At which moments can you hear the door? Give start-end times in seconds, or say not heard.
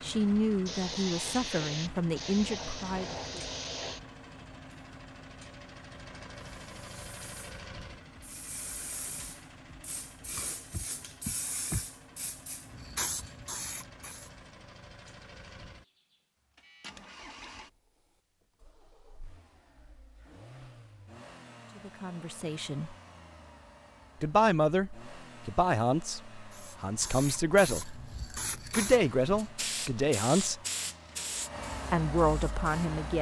10.7-11.8.